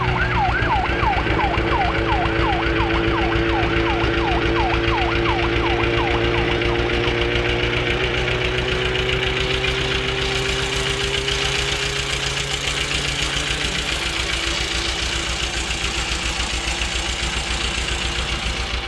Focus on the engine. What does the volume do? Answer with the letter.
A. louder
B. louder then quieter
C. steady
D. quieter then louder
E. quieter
C.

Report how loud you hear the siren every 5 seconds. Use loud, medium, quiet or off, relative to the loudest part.
loud, loud, medium, quiet.